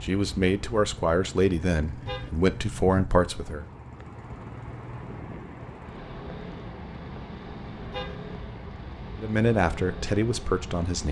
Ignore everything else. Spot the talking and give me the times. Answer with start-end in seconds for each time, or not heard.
0.0-3.6, 9.2-11.0.